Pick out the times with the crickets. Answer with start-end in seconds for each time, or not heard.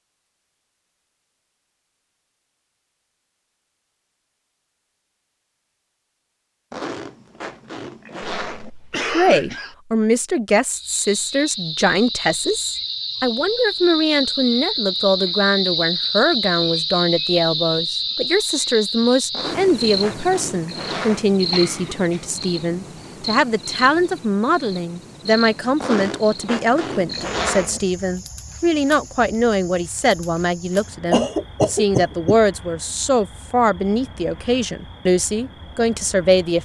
10.7-36.6.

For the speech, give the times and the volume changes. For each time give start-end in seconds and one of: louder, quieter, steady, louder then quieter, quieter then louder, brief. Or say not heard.
9.1-36.6 steady.